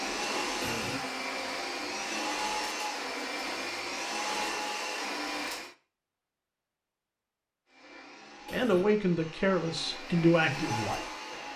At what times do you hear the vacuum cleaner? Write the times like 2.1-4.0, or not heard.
0.0-5.8, 7.7-11.5.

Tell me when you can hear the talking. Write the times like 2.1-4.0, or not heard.
8.5-11.5.